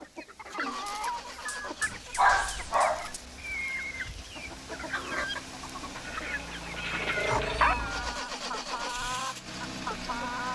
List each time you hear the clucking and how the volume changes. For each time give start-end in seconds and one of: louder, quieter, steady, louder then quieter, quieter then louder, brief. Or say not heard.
0.0-10.4 steady.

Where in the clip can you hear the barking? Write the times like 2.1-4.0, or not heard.
1.4-3.2, 6.0-7.8.